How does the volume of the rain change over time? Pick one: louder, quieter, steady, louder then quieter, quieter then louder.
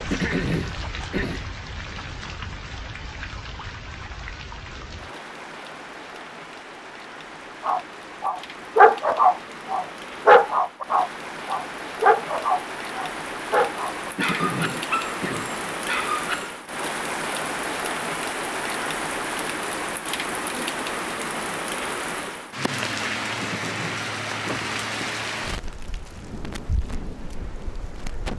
louder.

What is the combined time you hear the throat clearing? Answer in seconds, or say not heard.
4 s.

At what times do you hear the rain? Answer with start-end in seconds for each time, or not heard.
0.0-28.3.